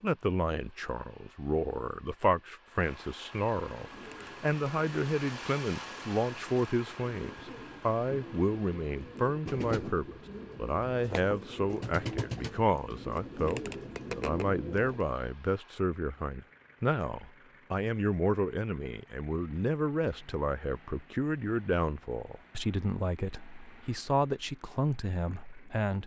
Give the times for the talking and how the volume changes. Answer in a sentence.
You can hear the talking from 0.0 to 26.0 s, at a steady volume.